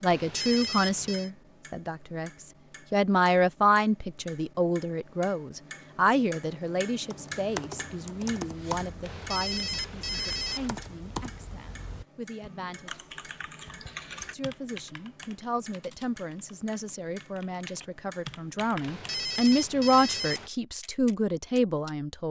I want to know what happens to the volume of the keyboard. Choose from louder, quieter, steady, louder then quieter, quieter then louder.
quieter.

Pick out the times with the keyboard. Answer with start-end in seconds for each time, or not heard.
7.1-19.1.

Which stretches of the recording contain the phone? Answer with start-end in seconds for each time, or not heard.
0.1-1.3, 9.0-10.7, 18.8-20.5.